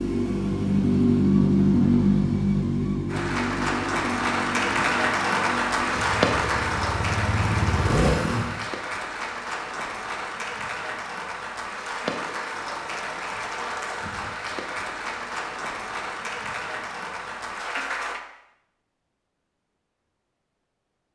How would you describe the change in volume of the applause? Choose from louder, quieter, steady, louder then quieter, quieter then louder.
quieter.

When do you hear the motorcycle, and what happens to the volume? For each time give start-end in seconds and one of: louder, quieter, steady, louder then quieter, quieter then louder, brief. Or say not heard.
0.0-8.6 quieter then louder.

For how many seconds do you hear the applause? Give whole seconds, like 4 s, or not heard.
15 s.